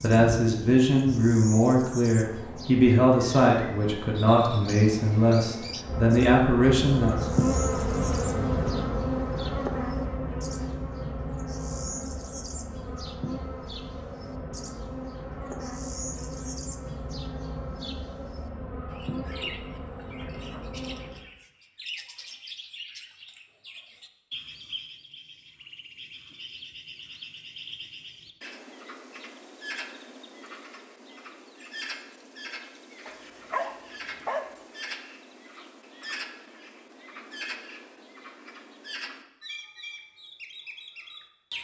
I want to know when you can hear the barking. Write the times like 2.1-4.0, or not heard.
33.0-34.5.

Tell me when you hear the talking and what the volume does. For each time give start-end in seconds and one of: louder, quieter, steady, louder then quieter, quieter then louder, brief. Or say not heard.
0.0-7.2 steady.